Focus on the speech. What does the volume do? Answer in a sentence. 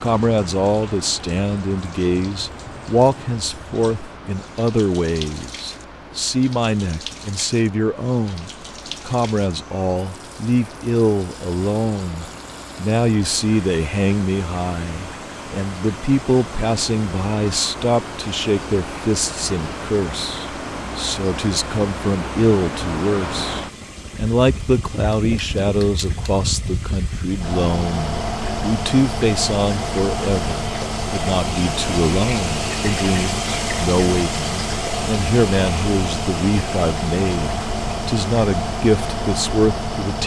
The volume of the speech stays about the same.